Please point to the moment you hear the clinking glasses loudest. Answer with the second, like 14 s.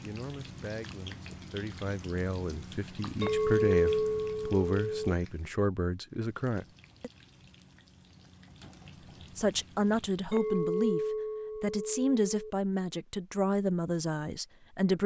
4 s.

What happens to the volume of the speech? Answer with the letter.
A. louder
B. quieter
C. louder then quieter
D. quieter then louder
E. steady
A.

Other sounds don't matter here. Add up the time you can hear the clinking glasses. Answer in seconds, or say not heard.
4 s.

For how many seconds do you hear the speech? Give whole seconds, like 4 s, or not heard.
13 s.